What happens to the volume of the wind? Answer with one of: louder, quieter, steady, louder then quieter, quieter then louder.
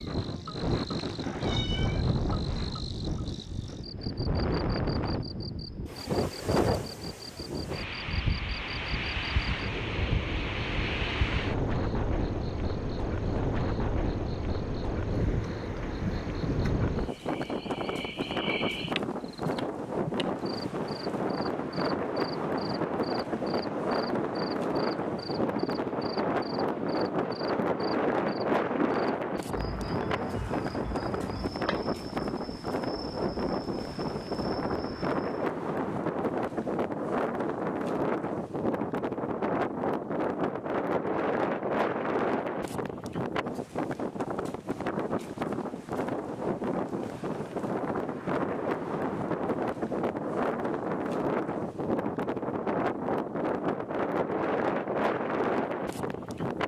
steady.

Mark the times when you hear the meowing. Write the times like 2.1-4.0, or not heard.
0.9-2.0.